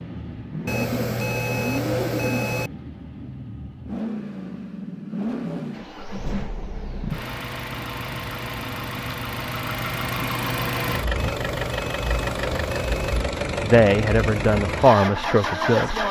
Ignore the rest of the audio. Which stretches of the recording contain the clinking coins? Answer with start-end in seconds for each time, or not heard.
not heard.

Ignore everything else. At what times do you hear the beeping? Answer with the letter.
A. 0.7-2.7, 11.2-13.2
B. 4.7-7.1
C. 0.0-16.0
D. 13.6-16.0
A.